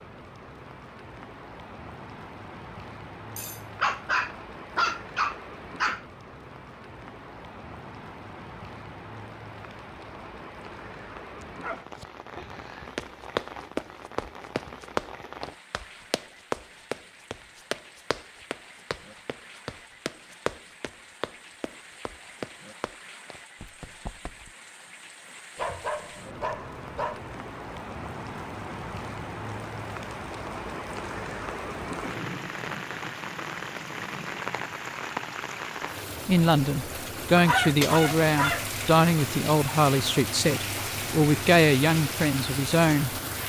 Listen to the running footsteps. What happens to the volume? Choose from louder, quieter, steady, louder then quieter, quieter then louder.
quieter.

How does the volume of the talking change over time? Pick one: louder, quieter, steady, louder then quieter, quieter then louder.
steady.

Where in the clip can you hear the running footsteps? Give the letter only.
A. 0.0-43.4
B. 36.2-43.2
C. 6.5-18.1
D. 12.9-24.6
D.